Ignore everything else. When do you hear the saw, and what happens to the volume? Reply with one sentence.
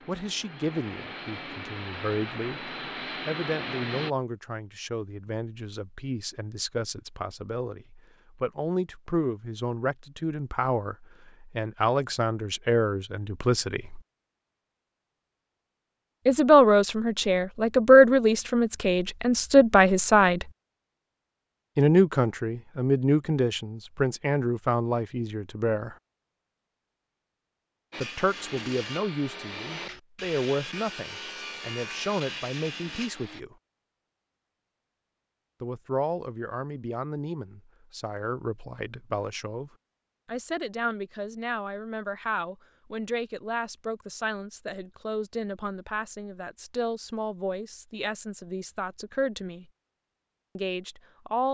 You can hear the saw from 27.9 to 33.4 s, at a steady volume.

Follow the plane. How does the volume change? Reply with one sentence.
The volume of the plane goes up.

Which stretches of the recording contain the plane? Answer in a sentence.
You can hear the plane from 0.0 to 4.2 s.